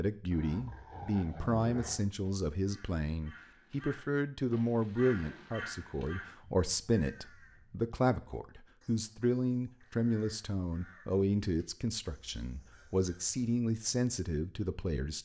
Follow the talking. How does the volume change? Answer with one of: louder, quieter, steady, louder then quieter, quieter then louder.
steady.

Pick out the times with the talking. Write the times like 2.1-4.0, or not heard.
0.0-15.2.